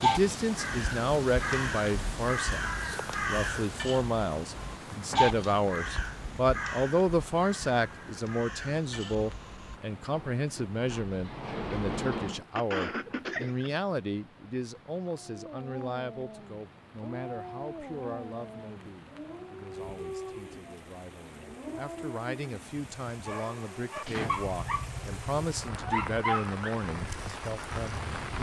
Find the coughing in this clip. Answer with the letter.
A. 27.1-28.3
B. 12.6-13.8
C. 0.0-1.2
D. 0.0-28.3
B.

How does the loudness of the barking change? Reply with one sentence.
The volume of the barking goes up.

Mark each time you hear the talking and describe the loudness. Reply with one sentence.
The talking can be heard from 0.0 to 28.3 s, getting quieter then louder.